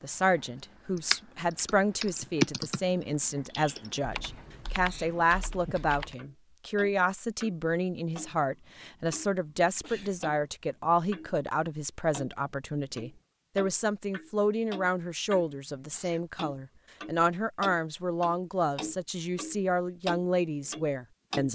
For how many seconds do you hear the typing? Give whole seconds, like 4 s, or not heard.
5 s.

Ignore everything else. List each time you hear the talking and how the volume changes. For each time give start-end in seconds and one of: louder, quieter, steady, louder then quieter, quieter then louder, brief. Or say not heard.
0.0-21.5 steady.